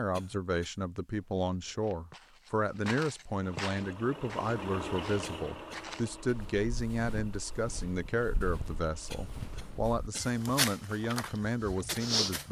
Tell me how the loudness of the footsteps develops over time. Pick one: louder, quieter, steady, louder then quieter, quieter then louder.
quieter then louder.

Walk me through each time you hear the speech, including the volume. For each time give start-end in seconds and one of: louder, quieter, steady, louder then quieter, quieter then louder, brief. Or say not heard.
0.0-12.4 steady.